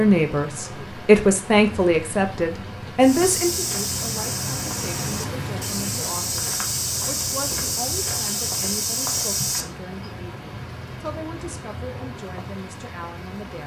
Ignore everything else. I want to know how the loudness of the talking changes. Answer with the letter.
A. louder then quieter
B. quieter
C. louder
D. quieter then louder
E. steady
B.